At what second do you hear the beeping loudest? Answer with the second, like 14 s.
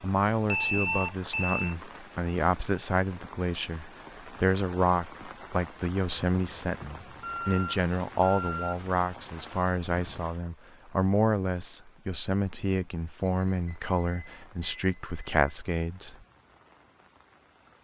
1 s.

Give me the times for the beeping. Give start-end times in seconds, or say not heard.
0.5-1.8, 7.2-8.8, 13.2-15.4.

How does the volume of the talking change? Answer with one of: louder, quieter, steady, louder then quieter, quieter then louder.
steady.